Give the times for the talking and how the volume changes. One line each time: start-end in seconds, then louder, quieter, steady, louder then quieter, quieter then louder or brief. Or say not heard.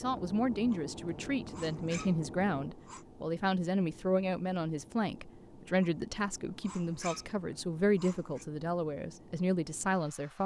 0.0-10.4 steady.